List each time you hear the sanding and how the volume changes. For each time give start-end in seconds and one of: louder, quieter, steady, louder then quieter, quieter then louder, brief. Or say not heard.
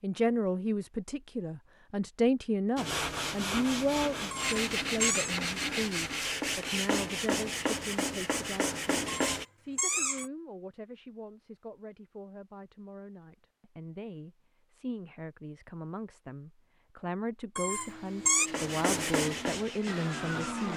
2.8-9.4 steady
18.4-20.7 brief.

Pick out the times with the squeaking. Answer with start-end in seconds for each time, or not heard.
4.3-5.3, 9.1-10.3, 17.6-18.5.